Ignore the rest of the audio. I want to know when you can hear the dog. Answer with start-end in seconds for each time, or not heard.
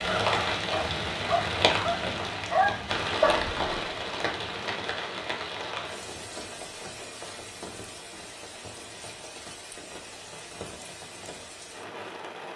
0.1-4.0.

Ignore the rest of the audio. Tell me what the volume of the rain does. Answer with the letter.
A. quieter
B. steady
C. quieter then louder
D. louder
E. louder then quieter
A.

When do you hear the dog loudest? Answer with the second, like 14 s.
3 s.